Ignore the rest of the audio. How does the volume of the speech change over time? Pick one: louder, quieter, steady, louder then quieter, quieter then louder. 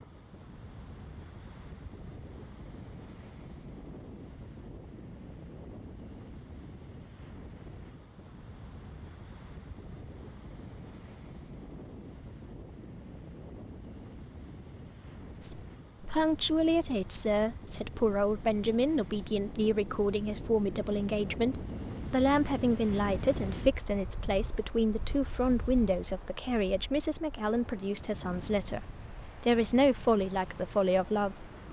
steady.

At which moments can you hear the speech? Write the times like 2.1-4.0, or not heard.
15.4-31.5.